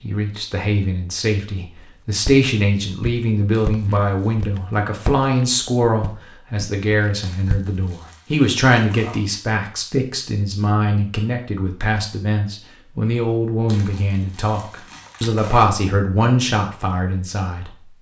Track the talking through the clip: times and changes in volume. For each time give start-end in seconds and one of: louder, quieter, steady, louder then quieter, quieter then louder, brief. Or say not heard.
0.0-17.9 steady.